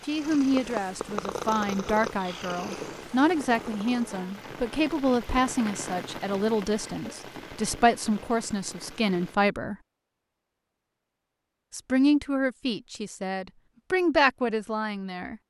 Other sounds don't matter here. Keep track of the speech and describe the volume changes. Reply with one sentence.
The loudness of the speech stays about the same.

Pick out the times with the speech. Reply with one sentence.
The speech can be heard from 0.1 to 9.8 s and from 11.7 to 15.3 s.